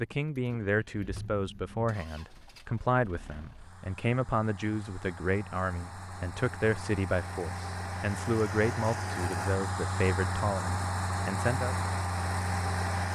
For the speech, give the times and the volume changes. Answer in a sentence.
The speech can be heard from 0.0 to 11.8 s, at a steady volume.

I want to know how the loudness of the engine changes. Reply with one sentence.
The volume of the engine goes up.